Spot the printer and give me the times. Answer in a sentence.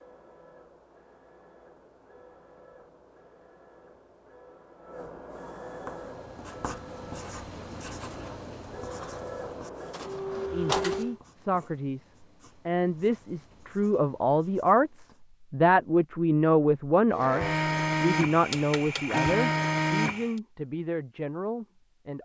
You can hear the printer from 0.0 to 11.2 s and from 17.1 to 20.4 s.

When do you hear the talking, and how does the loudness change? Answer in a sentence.
The talking can be heard from 10.5 to 22.1 s, getting louder then quieter.